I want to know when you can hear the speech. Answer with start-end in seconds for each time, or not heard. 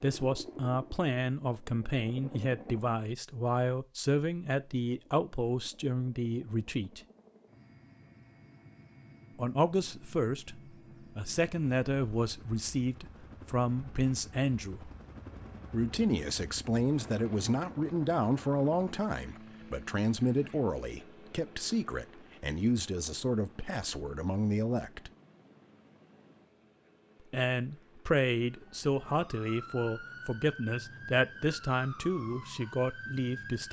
0.0-7.0, 9.3-14.9, 15.7-25.1, 27.3-33.6.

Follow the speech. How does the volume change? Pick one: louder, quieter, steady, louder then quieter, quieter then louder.
steady.